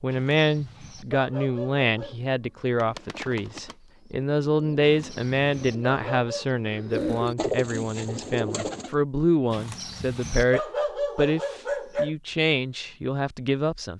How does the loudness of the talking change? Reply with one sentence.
The loudness of the talking stays about the same.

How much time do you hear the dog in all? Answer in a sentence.
The dog can be heard for 6 seconds in total.